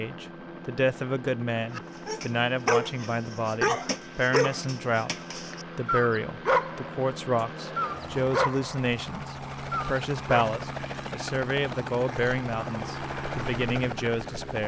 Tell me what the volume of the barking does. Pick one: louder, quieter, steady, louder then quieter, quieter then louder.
quieter.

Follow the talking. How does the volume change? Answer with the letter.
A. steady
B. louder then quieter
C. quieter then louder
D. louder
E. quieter
A.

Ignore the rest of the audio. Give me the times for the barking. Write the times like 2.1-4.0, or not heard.
1.8-10.5.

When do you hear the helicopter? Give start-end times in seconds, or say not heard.
0.0-14.6.